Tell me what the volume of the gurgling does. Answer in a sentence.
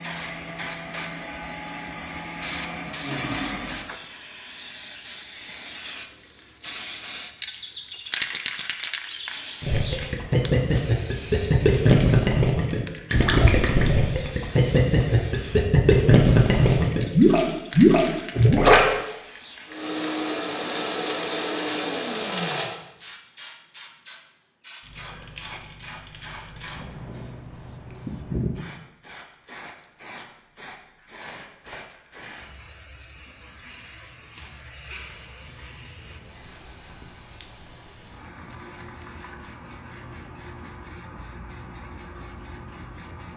The volume of the gurgling goes up.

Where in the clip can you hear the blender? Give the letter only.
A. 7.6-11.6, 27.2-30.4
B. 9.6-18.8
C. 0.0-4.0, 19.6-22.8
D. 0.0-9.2
C.